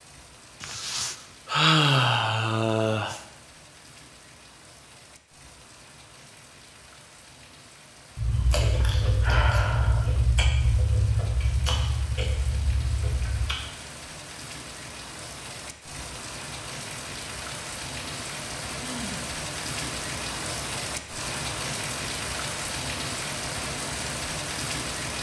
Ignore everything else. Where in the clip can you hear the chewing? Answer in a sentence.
You can hear the chewing from 8.2 to 13.6 s.